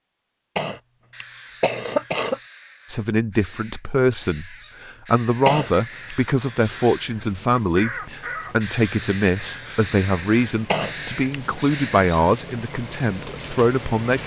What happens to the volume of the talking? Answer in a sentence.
The volume of the talking stays about the same.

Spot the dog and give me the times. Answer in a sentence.
The dog can't be heard in this clip.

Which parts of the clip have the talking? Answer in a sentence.
The talking can be heard from 2.9 to 14.2 s.